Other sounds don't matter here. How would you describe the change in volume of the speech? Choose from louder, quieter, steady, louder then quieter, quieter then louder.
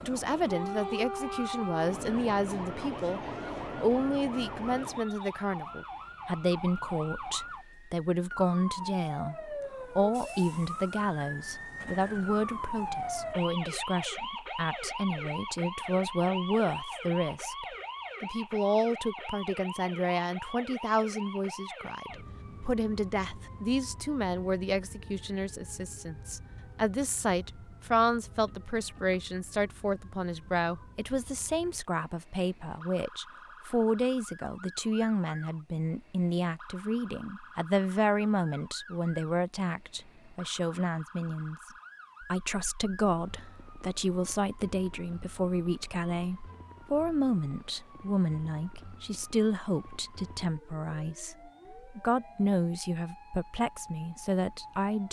steady.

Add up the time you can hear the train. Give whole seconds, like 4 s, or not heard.
5 s.